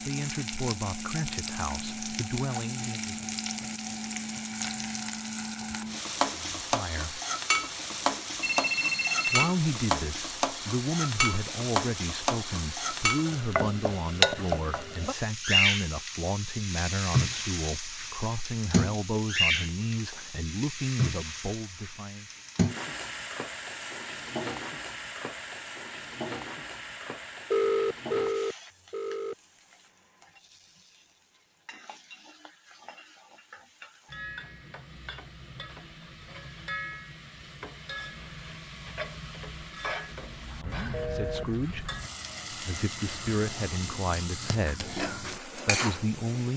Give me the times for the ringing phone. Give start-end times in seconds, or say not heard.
8.4-9.5, 27.5-29.4, 40.9-41.5.